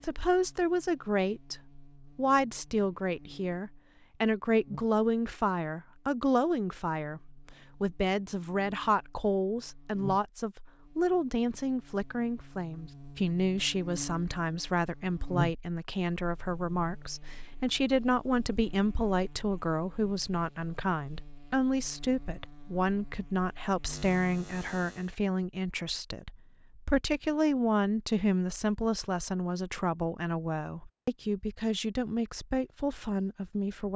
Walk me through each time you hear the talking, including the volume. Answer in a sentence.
The talking can be heard from 0.0 to 33.9 s, at a steady volume.